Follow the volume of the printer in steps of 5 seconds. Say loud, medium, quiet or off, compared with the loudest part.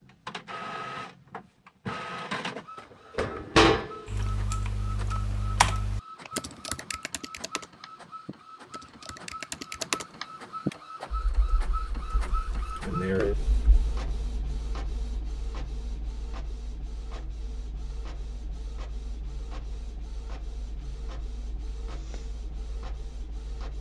loud, quiet, medium, quiet, quiet.